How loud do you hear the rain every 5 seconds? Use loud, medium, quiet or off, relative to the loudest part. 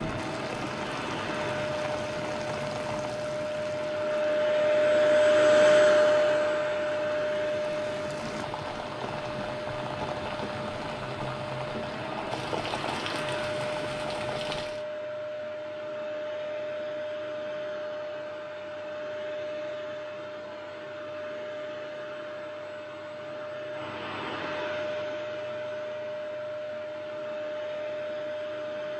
loud, loud, loud, off, off, off.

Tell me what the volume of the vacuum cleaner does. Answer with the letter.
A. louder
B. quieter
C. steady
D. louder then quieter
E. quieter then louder
B.